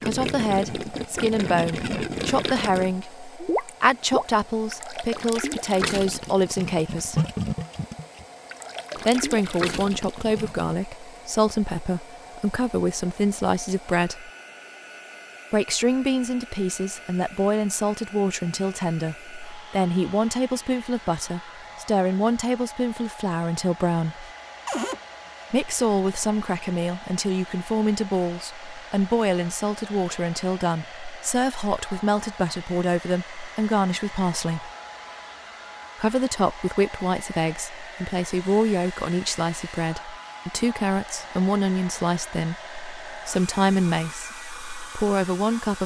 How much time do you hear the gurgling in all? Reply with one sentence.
You can hear the gurgling for 11 seconds altogether.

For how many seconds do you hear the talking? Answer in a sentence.
You can hear the talking for 40 seconds altogether.